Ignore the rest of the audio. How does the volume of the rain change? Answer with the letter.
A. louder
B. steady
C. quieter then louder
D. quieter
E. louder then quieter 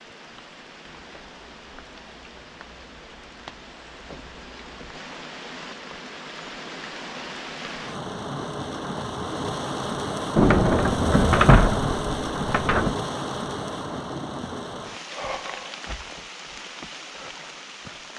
E.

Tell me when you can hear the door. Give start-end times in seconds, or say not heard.
10.3-12.9.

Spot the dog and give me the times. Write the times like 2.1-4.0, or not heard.
not heard.